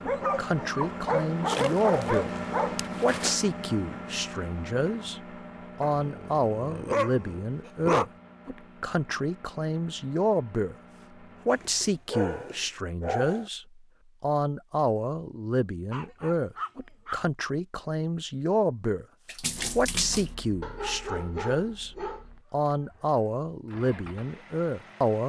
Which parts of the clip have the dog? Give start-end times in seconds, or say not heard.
0.1-3.0, 5.8-8.1, 11.5-13.4, 15.9-17.2, 20.6-22.2.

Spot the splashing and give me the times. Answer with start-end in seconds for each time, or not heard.
1.4-3.4, 19.2-20.4.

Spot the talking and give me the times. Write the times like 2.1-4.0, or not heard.
0.0-2.3, 3.0-5.2, 5.8-10.8, 11.4-19.1, 19.8-25.2.